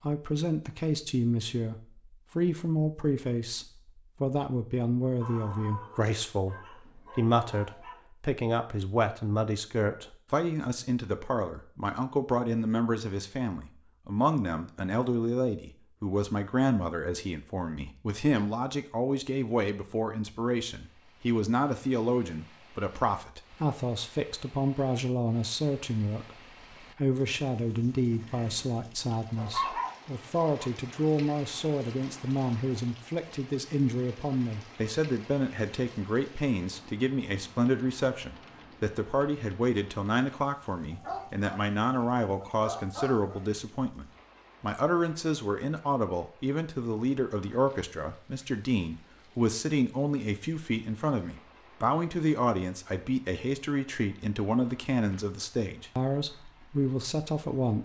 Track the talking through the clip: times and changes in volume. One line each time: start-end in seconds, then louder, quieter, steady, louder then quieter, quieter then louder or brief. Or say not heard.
0.0-57.8 steady.